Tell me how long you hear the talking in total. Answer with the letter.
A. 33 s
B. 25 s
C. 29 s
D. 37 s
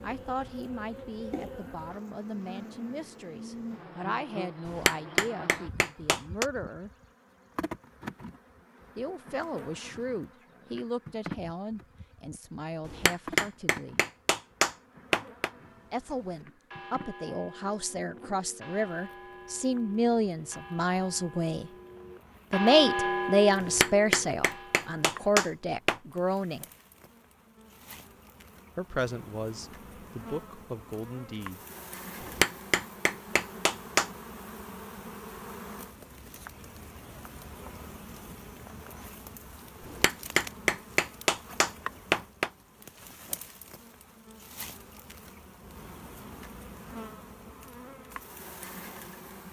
B.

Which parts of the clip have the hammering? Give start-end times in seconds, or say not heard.
4.7-6.5, 12.8-15.5, 23.6-26.0, 32.2-34.1, 39.9-42.5.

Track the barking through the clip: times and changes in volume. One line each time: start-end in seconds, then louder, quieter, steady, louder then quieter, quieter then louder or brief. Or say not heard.
not heard.